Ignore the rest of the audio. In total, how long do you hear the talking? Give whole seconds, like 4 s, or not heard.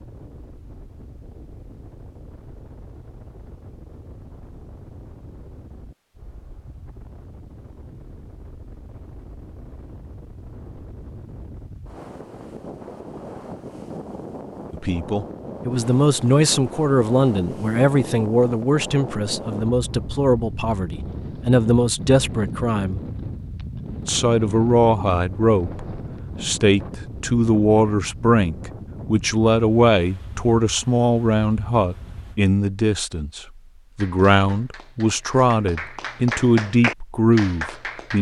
22 s.